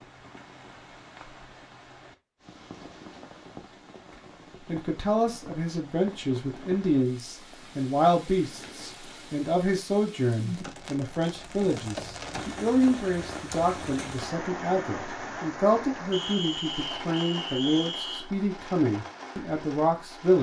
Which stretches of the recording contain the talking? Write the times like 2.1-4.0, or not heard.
4.7-20.3.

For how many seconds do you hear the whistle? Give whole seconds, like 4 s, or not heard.
2 s.